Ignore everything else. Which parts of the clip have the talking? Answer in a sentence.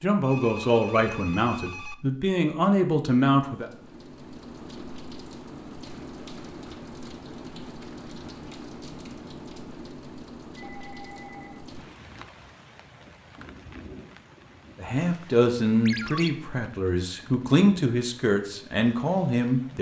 You can hear the talking from 0.0 to 3.6 s and from 14.8 to 19.7 s.